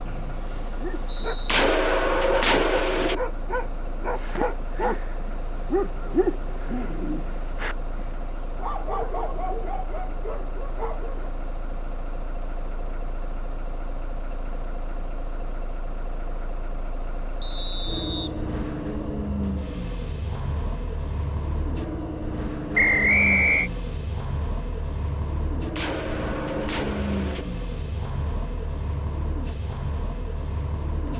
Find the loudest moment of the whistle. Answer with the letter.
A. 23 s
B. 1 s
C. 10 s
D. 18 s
A.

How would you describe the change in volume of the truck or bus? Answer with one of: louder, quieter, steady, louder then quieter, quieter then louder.
louder.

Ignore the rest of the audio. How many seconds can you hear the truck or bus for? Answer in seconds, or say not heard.
31 s.